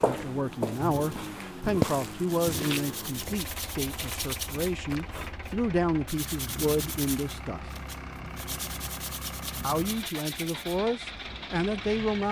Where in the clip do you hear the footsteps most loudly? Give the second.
2 s.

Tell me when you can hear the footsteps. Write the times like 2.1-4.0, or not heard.
0.0-5.2.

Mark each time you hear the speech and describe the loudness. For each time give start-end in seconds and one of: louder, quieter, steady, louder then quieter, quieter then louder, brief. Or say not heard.
0.0-7.7 quieter then louder
9.6-12.2 brief.